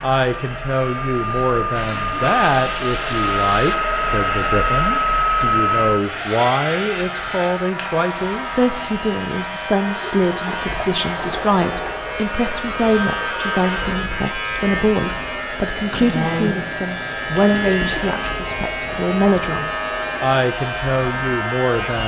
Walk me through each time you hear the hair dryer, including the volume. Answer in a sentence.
The hair dryer can be heard from 0.0 to 22.0 s, getting quieter.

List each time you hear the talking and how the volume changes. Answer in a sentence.
The talking can be heard from 0.0 to 22.0 s, at a steady volume.